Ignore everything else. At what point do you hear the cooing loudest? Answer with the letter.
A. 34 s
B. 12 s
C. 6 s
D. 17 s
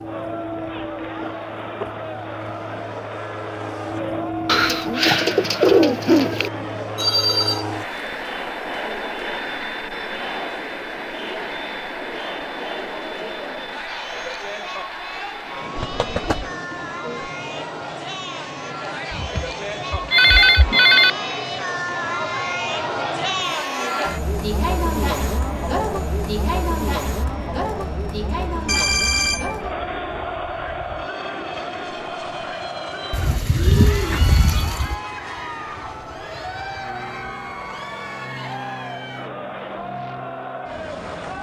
C.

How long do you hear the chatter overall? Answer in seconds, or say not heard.
41 s.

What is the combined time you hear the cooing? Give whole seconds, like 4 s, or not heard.
5 s.